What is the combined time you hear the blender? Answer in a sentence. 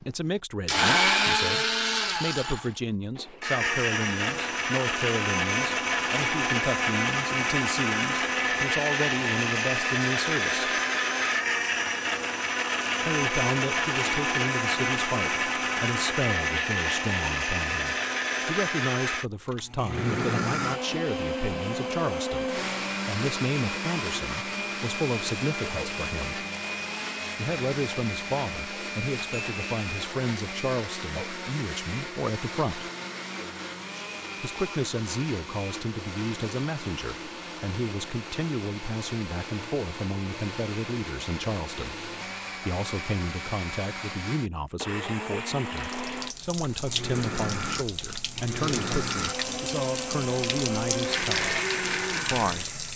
The blender can be heard for 53 seconds in total.